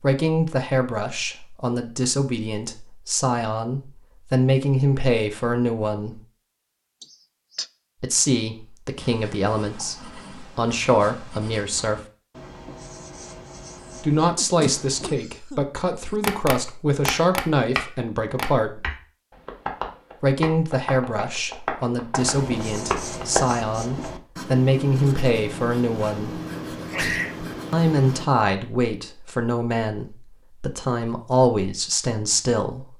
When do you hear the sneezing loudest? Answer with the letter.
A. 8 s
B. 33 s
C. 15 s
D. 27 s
D.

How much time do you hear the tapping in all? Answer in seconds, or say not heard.
7 s.